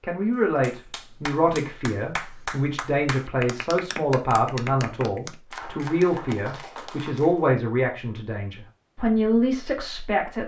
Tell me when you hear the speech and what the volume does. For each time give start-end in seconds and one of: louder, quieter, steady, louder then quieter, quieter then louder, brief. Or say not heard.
0.0-10.4 steady.